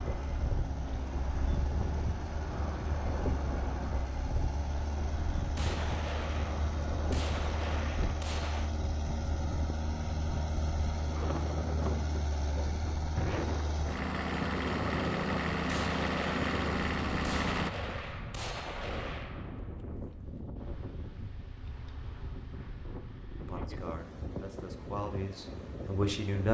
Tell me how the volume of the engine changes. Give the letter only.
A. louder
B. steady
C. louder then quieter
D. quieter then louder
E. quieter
A.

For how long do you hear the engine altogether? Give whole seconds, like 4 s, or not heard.
18 s.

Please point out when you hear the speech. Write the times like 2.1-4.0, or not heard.
23.4-26.4.